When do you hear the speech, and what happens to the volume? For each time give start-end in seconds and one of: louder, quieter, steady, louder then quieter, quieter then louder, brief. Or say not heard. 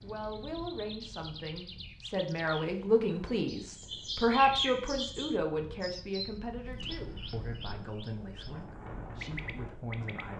0.0-10.3 louder then quieter.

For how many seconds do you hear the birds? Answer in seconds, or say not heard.
10 s.